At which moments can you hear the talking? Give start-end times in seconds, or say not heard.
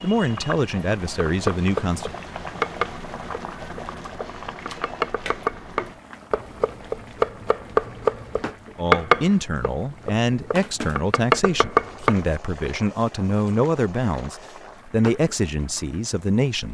0.0-2.1, 8.8-16.6.